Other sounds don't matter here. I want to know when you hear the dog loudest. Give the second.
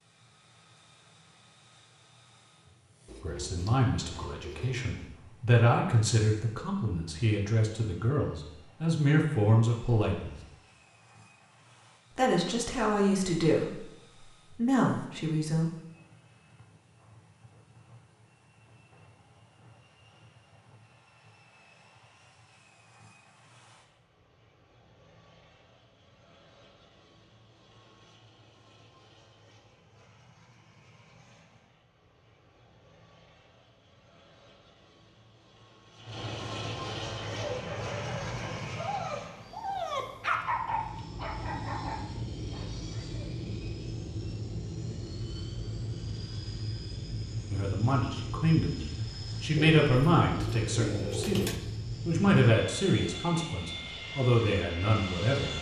40 s.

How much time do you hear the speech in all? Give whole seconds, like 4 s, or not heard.
19 s.